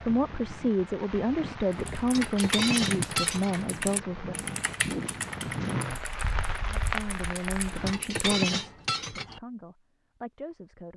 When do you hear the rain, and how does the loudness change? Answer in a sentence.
You can hear the rain from 0.0 to 8.0 s, getting louder.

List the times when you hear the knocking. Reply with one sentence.
The knocking can't be heard in this clip.